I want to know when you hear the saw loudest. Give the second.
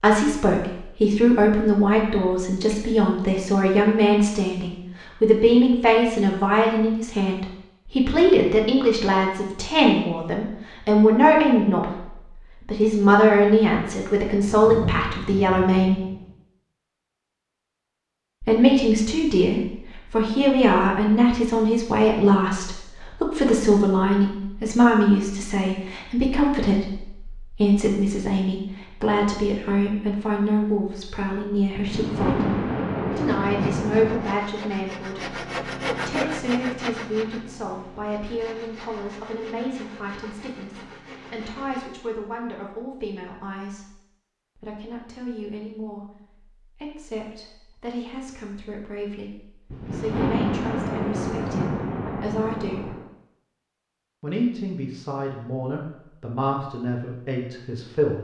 36 s.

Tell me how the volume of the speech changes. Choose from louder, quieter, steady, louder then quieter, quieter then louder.
quieter.